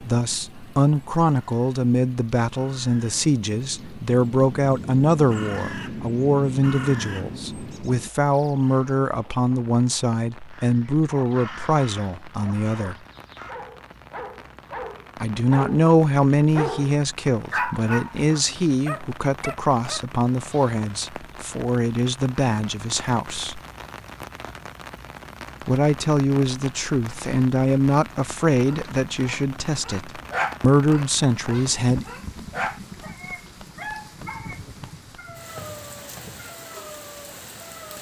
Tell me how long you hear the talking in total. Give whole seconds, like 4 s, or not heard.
28 s.